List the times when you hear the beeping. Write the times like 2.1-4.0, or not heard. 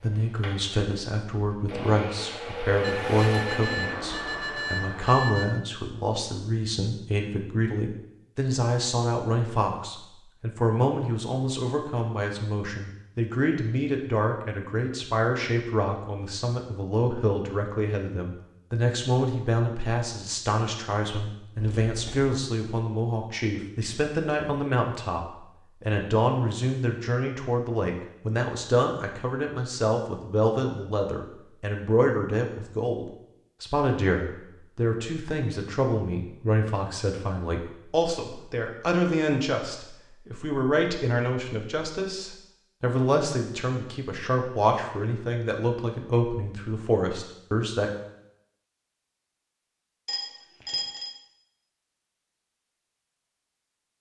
2.8-5.5, 21.6-22.4, 50.0-51.1.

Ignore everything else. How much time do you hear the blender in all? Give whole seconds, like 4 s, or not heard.
5 s.